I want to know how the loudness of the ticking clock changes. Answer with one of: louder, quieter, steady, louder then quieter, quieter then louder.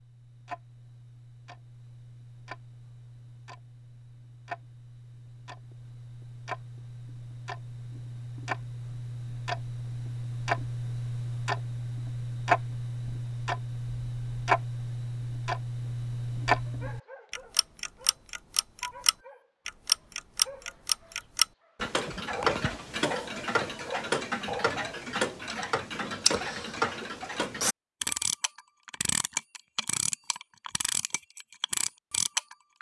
louder.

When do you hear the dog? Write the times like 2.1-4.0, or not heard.
16.6-25.1.